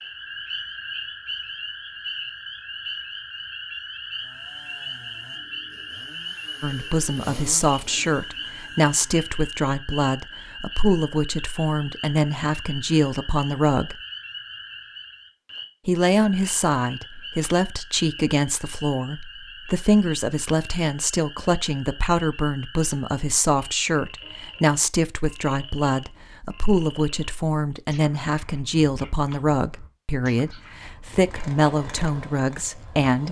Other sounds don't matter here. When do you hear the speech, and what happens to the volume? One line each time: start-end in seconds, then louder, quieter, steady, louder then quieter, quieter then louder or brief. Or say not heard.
6.6-13.9 steady
15.8-33.2 steady.